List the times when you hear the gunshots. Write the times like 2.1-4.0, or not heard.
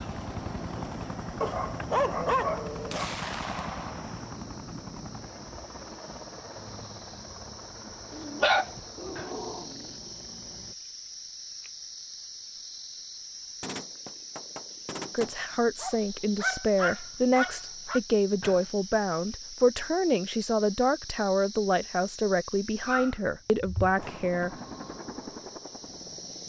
2.9-4.4, 13.6-15.4.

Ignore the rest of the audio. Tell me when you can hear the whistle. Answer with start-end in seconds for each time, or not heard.
not heard.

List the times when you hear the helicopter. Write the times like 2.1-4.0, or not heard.
0.0-10.8, 23.9-26.4.